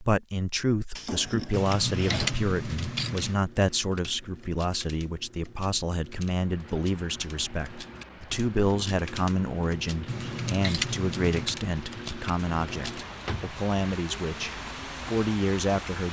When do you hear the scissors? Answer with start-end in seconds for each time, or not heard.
1.5-3.4, 10.1-11.6.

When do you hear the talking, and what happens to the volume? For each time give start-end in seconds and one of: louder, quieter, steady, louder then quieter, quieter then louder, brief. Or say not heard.
0.0-16.0 steady.